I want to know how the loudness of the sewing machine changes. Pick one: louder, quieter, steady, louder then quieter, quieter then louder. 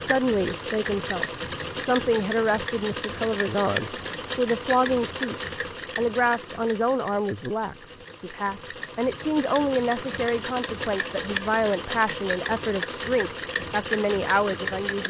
quieter then louder.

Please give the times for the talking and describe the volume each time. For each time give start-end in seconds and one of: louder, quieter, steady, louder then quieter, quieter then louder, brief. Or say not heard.
0.0-15.0 steady.